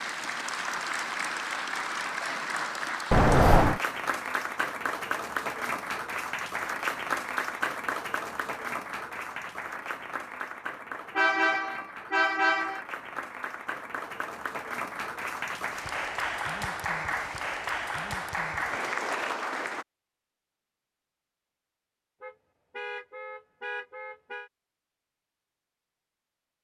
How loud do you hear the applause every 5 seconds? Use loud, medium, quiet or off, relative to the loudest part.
loud, loud, medium, loud, off, off.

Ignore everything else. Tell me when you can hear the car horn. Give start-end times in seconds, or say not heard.
3.1-3.8, 11.2-12.8, 22.2-24.5.